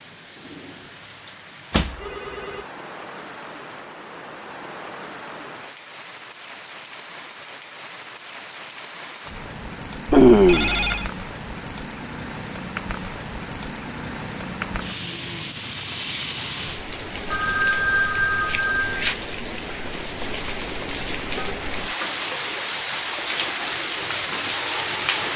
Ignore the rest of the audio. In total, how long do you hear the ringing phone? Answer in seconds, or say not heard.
4 s.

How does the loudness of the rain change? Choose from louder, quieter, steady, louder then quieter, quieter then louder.
louder.